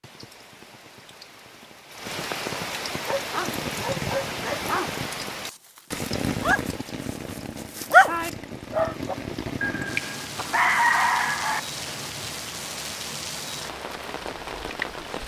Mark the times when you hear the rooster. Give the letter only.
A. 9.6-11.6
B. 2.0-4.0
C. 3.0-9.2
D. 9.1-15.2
A.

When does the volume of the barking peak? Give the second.
8 s.